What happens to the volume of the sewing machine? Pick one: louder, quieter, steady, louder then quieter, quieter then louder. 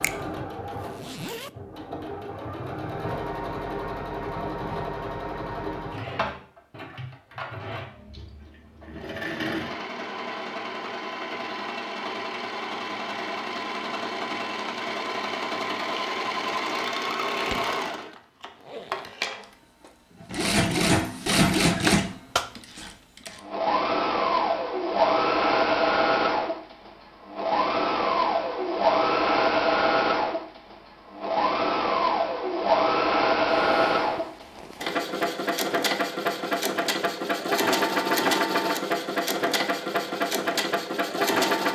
louder.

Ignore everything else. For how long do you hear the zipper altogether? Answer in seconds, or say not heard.
4 s.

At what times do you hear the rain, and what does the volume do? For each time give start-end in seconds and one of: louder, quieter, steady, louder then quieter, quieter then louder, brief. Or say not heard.
not heard.